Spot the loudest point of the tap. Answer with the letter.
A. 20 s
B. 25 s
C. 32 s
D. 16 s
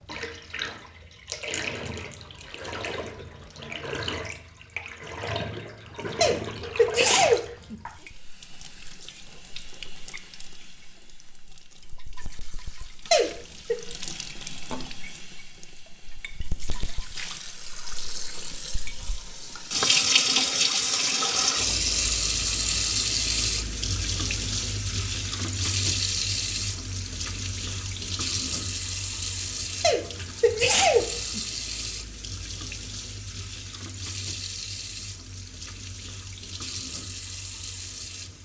A.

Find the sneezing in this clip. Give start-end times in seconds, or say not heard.
6.2-7.8, 13.1-13.8, 29.8-31.4.